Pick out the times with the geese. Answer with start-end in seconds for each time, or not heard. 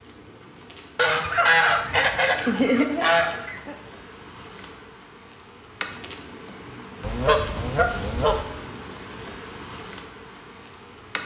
0.9-3.8, 7.0-8.4.